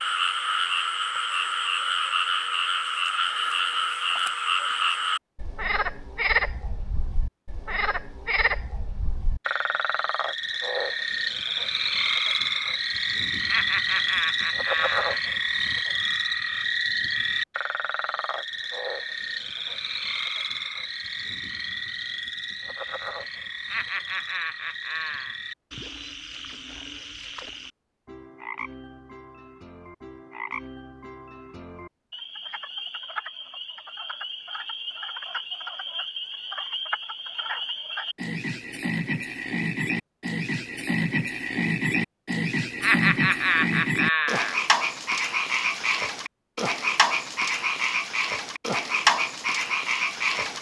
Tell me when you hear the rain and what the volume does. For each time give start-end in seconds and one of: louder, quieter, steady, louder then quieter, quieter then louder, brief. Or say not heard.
not heard.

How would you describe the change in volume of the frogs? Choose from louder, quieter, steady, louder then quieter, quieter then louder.
quieter then louder.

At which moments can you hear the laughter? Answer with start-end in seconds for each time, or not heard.
13.4-15.2, 23.6-25.4, 42.8-44.6.